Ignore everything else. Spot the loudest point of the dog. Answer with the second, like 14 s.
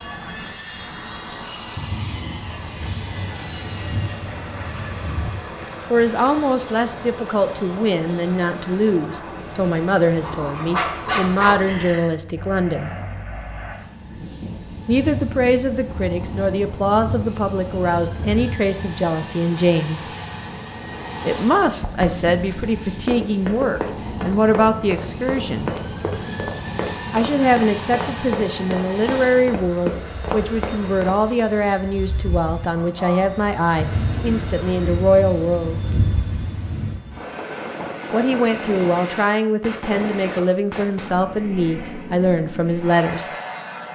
11 s.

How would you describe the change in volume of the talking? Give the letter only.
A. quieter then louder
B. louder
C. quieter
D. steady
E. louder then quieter
D.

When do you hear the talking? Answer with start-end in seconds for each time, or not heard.
5.9-12.9, 14.8-20.1, 21.2-25.7, 27.1-36.0, 38.1-43.3.